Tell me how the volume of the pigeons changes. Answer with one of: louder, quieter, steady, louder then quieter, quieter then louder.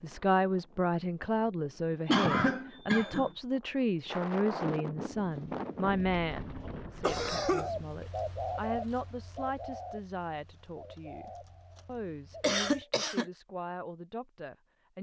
louder then quieter.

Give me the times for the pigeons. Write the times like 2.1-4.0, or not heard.
5.1-12.8.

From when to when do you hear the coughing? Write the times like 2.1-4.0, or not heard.
2.0-3.3, 7.0-7.7, 12.4-13.2.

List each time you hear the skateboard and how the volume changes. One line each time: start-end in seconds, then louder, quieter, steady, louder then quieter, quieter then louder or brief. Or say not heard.
not heard.